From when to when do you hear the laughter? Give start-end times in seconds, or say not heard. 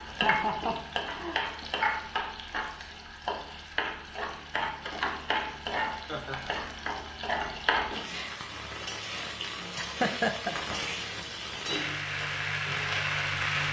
0.1-1.6, 6.0-6.5, 9.8-10.8.